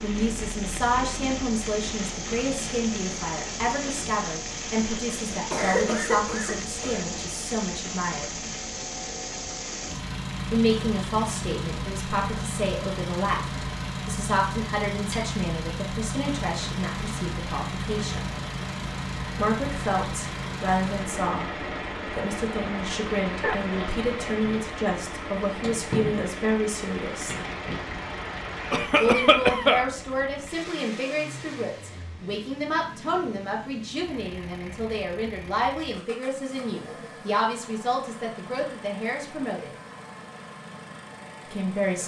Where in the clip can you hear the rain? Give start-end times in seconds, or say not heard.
0.0-28.9.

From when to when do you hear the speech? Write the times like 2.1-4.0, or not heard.
0.0-8.3, 10.5-18.3, 19.4-27.4, 29.0-39.7, 41.5-42.0.